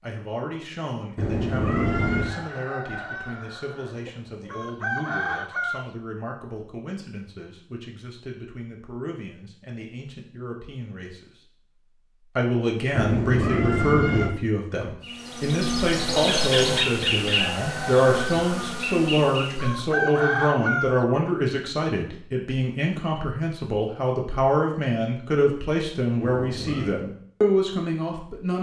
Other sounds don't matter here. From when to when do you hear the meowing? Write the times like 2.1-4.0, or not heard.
1.1-2.3, 12.9-14.3, 26.2-27.0.